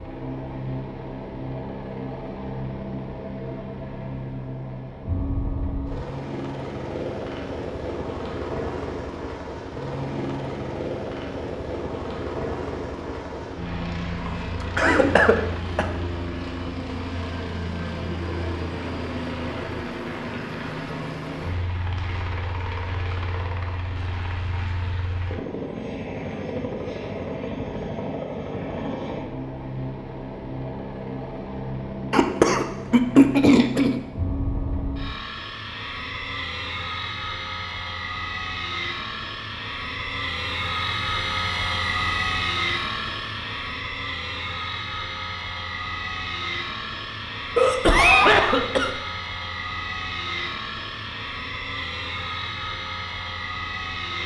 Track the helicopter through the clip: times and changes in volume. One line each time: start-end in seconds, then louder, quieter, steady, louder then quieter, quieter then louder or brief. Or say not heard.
0.0-54.2 steady.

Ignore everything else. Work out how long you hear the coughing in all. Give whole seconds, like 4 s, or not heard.
5 s.